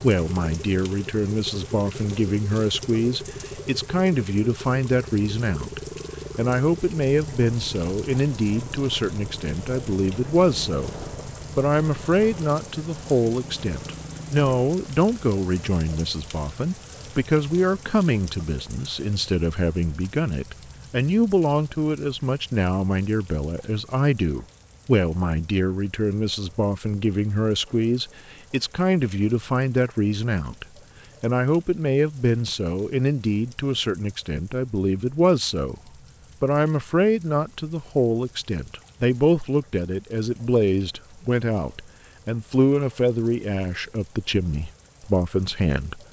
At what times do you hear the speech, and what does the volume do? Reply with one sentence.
The speech can be heard from 0.0 to 10.9 s, at a steady volume; from 11.6 to 35.8 s, at a steady volume; and from 36.4 to 46.0 s, at a steady volume.